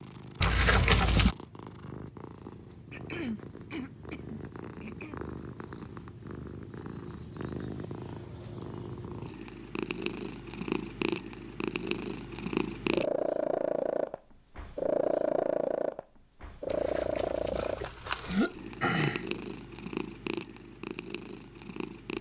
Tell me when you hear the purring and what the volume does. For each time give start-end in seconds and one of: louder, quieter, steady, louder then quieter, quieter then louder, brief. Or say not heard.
0.0-22.1 louder then quieter.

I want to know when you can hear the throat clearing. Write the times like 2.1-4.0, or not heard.
2.9-5.2, 18.2-19.2.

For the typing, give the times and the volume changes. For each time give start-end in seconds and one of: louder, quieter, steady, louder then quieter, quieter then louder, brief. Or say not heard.
not heard.